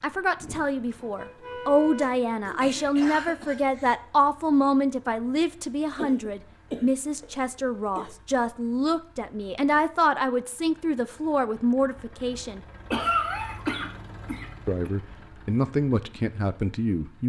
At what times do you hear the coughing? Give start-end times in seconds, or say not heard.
1.9-4.0, 6.0-8.1, 12.9-14.9.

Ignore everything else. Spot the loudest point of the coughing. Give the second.
13 s.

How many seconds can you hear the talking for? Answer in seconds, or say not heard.
15 s.